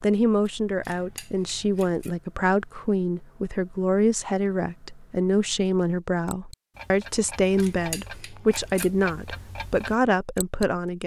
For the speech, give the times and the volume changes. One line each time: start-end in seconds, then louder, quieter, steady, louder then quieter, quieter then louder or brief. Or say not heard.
0.0-11.0 steady.